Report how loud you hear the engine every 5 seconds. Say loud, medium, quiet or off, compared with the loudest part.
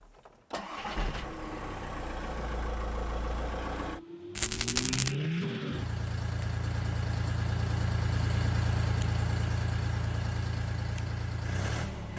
medium, loud, loud.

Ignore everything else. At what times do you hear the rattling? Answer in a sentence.
The rattling can be heard from 4.3 to 5.2 s.